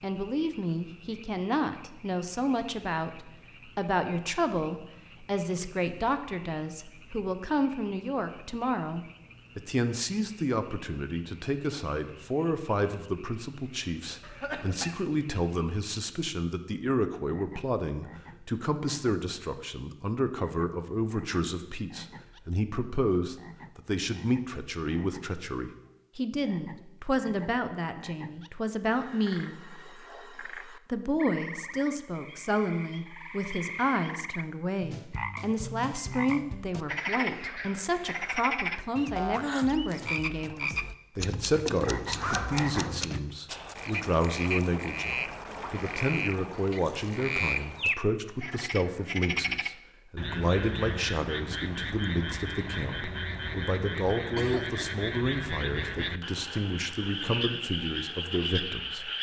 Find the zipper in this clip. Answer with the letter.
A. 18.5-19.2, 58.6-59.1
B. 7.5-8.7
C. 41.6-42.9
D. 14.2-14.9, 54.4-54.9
C.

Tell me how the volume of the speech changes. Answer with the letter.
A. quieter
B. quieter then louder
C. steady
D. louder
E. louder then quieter
C.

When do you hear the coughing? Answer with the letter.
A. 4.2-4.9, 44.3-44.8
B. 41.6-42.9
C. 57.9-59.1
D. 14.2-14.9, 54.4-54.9
D.